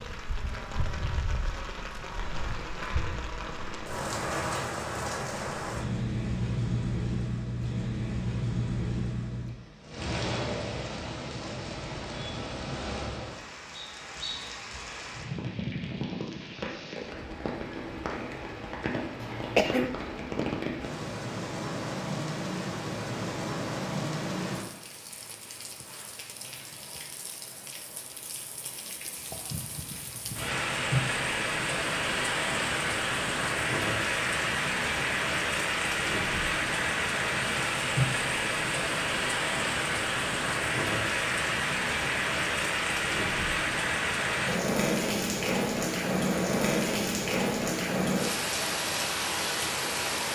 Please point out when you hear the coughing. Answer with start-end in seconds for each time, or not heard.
19.2-19.9.